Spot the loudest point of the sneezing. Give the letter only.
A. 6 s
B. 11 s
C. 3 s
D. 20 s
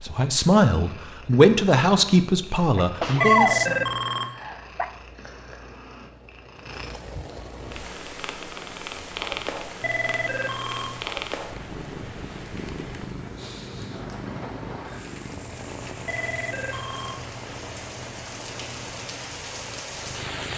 C.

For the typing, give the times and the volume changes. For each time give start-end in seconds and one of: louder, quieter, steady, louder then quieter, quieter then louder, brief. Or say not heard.
not heard.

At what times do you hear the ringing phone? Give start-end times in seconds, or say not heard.
3.1-4.3, 9.8-11.0, 16.1-17.2.